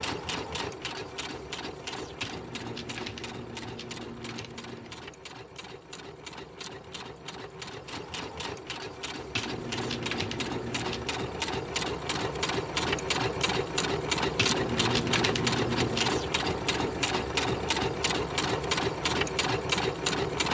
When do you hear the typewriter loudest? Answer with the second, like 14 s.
15 s.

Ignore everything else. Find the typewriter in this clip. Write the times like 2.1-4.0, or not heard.
2.2-5.0, 9.3-11.1, 14.3-16.2.